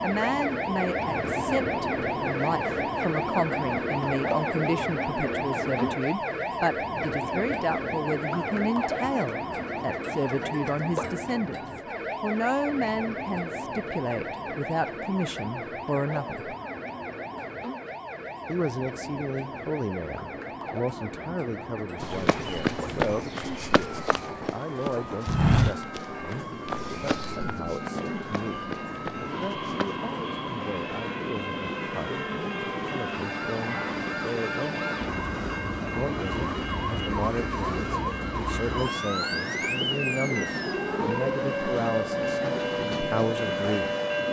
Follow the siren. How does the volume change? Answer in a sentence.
The loudness of the siren goes down, then up.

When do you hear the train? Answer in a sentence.
The train can be heard from 0.0 to 44.2 s.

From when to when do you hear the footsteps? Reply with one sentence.
You can hear the footsteps from 22.0 to 30.0 s.